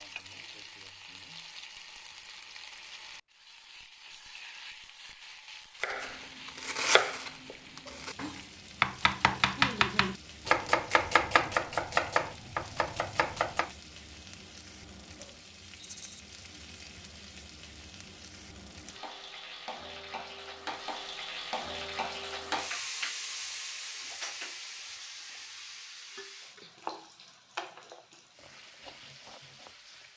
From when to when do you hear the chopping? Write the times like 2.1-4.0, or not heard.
5.8-13.7.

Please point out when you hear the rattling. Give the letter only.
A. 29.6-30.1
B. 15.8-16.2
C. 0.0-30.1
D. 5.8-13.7
B.